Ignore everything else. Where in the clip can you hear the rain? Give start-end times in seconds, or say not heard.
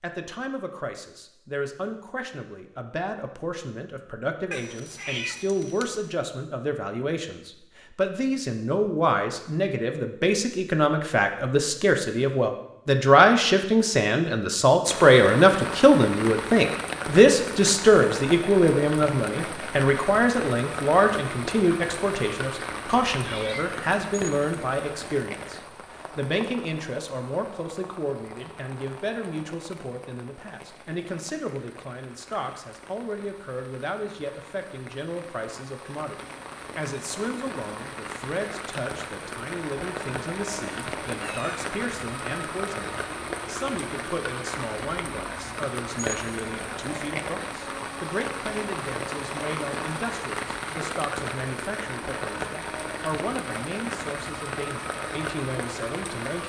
14.8-56.4.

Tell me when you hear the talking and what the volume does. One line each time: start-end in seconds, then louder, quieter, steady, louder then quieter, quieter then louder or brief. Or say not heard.
0.0-56.4 louder then quieter.